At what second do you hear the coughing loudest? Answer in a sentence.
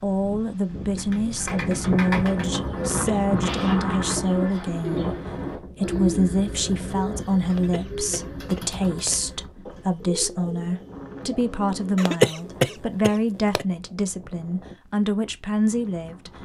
The loudest moment of the coughing is at 12 seconds.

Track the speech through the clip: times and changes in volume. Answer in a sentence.
The speech can be heard from 0.0 to 16.4 s, at a steady volume.